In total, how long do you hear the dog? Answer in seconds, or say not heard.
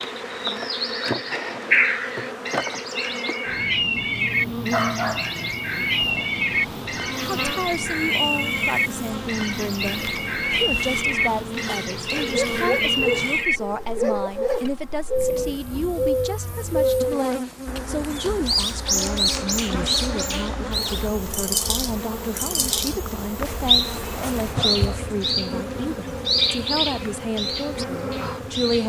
6 s.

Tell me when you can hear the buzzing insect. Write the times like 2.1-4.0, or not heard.
0.0-28.8.